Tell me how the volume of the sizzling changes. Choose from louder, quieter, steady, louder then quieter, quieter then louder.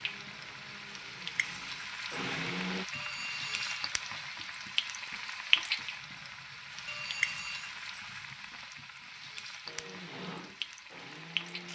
louder then quieter.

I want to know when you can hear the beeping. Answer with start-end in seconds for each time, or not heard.
2.9-3.8, 6.8-7.8.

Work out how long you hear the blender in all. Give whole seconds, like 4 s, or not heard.
5 s.